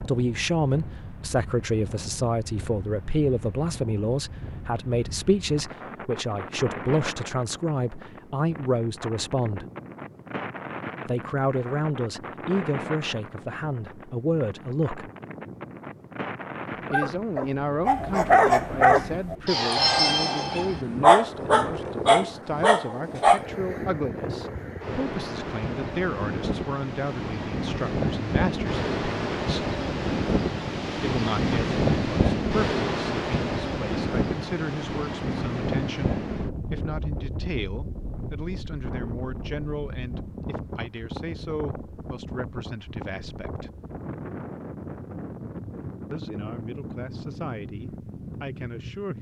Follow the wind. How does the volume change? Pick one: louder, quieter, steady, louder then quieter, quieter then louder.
louder then quieter.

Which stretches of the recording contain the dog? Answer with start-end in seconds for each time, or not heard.
16.8-23.4.